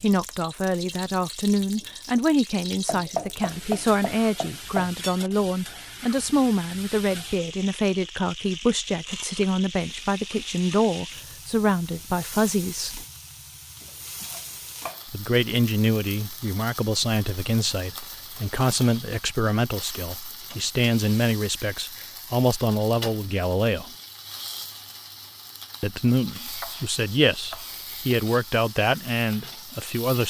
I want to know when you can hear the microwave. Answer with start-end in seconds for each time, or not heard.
not heard.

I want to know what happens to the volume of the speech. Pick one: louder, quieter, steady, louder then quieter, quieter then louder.
steady.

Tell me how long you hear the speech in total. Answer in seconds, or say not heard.
26 s.